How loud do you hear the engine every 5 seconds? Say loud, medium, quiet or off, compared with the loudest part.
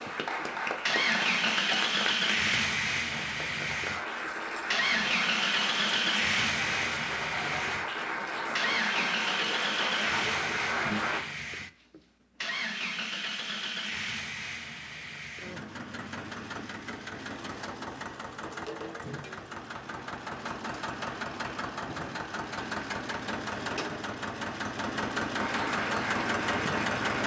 loud, loud, medium, medium, medium, loud.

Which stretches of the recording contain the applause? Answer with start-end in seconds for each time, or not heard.
0.0-11.2, 25.4-27.2.